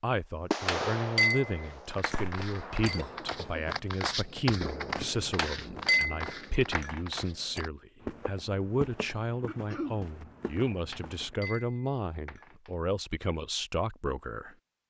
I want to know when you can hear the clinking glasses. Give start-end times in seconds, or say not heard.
0.7-3.0, 5.3-7.6, 10.9-12.7.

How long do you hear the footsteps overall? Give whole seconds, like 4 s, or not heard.
10 s.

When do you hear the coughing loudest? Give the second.
10 s.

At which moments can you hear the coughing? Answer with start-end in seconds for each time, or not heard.
3.0-3.8, 9.4-10.0.